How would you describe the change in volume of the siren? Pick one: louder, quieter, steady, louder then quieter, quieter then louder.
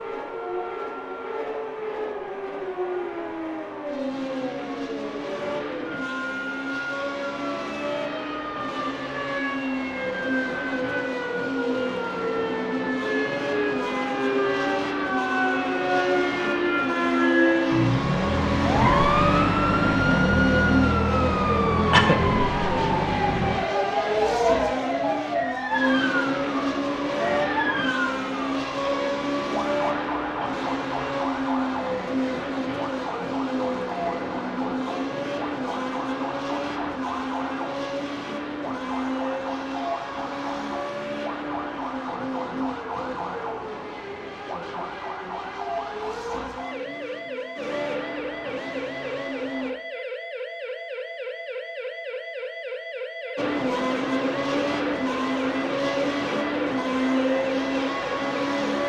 louder then quieter.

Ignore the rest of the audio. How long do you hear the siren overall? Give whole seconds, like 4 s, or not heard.
59 s.